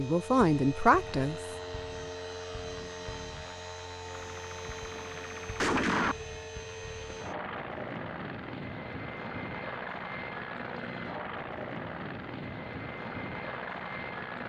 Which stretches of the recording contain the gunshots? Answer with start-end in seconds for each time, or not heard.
4.3-6.2.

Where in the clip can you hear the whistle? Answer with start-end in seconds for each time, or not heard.
not heard.